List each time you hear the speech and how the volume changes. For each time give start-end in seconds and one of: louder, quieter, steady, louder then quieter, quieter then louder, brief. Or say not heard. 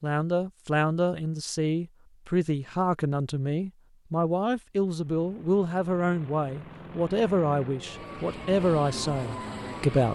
0.0-10.0 steady.